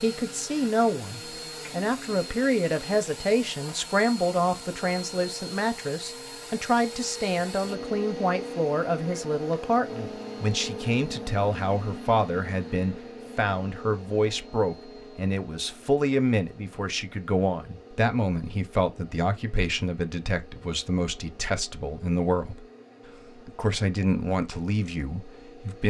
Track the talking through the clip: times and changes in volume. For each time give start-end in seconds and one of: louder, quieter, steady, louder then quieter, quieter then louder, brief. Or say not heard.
0.0-22.6 steady
23.4-25.8 brief.